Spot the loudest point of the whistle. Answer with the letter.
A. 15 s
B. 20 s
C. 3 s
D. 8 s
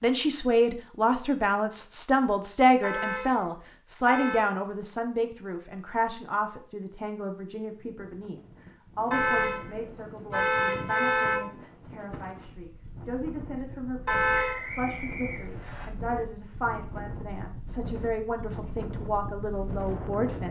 A.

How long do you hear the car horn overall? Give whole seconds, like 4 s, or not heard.
5 s.